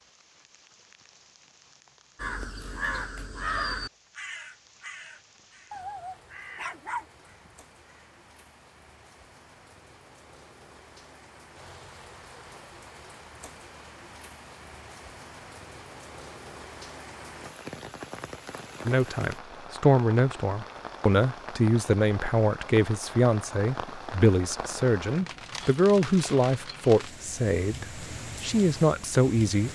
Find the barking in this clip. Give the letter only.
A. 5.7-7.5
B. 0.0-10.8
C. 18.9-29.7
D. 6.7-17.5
A.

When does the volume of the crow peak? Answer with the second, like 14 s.
4 s.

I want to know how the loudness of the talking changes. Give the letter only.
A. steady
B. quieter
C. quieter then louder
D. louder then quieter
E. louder
A.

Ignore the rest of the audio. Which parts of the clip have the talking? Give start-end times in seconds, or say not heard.
18.9-29.7.